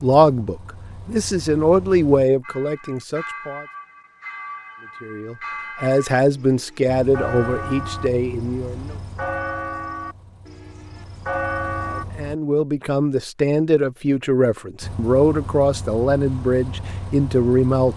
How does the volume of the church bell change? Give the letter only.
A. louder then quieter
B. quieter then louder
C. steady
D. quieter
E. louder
E.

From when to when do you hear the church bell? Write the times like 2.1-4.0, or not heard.
2.4-12.1.